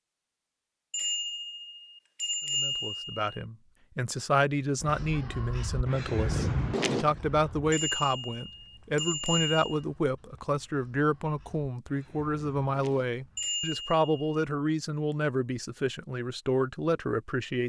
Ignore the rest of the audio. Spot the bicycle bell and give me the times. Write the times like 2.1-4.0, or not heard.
0.9-3.2, 7.7-9.8, 13.3-14.2.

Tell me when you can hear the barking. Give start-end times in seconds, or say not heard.
not heard.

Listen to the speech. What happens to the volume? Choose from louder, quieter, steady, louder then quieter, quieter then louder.
steady.